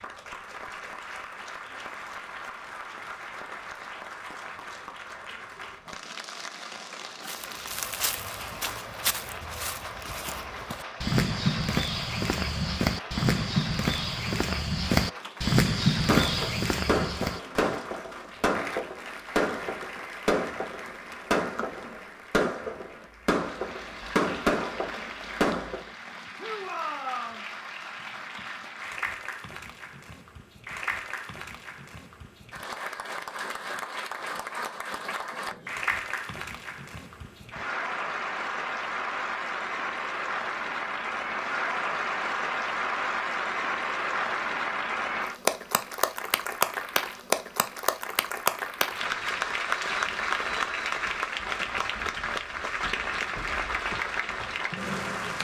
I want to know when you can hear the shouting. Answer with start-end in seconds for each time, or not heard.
26.4-27.4.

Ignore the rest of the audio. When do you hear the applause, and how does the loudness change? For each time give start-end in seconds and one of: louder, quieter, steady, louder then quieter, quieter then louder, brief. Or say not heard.
0.0-55.4 louder.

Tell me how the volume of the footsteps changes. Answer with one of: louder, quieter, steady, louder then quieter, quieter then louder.
louder.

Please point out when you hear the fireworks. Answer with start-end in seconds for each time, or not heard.
16.1-25.9.